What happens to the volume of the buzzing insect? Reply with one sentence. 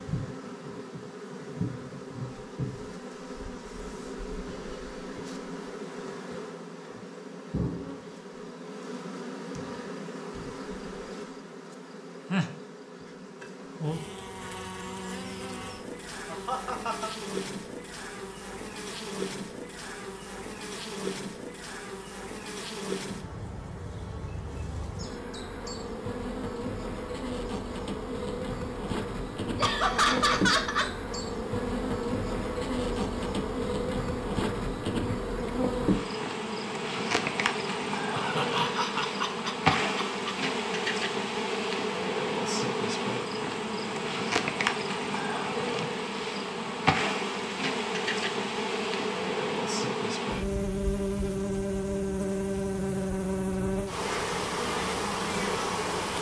The volume of the buzzing insect goes up.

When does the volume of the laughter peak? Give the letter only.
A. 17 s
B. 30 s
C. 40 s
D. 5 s
B.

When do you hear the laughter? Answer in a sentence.
You can hear the laughter from 16.3 to 17.1 s, from 29.6 to 30.9 s and from 38.1 to 40.5 s.